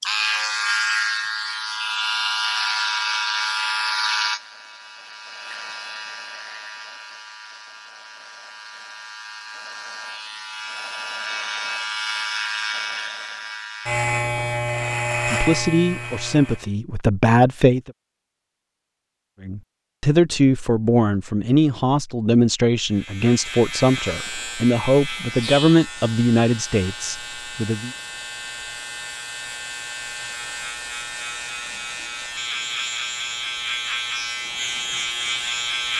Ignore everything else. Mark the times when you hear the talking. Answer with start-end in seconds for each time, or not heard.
15.2-17.9, 19.4-27.9.